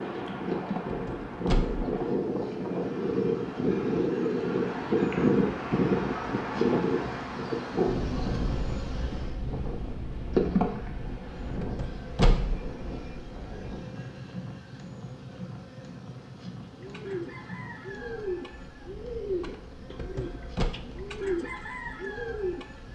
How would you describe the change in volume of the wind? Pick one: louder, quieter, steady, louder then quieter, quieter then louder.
quieter.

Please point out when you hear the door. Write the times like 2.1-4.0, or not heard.
0.8-1.9, 11.6-12.7, 19.9-20.8.